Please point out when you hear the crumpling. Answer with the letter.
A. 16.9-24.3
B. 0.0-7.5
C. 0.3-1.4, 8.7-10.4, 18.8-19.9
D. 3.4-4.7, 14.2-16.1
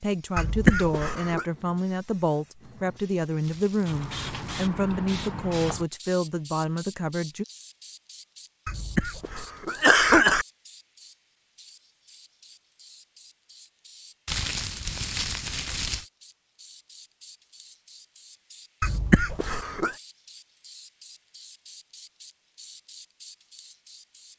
D.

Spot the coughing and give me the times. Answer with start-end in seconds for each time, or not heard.
0.3-1.4, 8.7-10.4, 18.8-19.9.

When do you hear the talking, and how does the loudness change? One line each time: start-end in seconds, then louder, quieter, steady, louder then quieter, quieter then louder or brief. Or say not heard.
0.0-7.5 steady.